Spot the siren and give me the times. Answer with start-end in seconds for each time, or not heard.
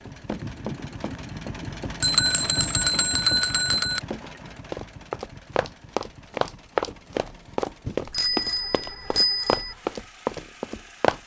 not heard.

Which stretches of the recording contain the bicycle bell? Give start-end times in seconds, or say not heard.
2.0-4.0, 7.8-9.8.